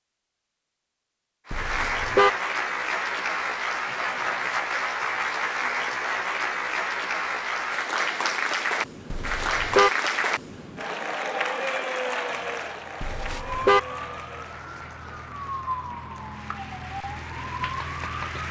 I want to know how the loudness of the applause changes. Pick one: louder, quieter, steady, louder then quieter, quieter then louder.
quieter.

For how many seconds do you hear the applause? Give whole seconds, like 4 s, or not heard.
17 s.